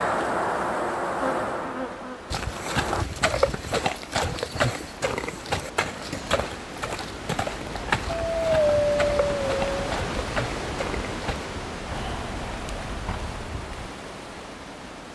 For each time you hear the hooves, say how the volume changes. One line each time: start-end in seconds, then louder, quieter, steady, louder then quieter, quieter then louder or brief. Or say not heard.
2.3-13.9 quieter.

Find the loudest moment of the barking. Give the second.
9 s.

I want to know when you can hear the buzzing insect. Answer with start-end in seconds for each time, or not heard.
0.0-3.0.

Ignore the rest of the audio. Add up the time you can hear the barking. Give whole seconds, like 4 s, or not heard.
2 s.